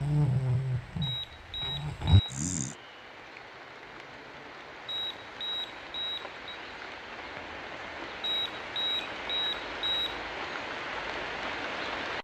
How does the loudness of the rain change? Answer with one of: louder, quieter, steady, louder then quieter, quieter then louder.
louder.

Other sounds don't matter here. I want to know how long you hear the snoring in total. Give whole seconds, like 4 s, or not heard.
3 s.